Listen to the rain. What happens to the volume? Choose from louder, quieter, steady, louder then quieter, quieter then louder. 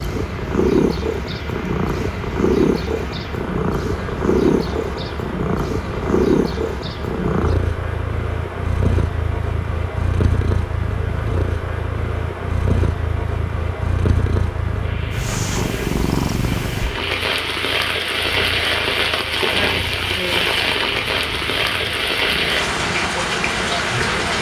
louder.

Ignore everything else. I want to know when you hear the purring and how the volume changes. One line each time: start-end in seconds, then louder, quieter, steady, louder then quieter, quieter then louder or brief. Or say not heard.
0.0-24.2 quieter.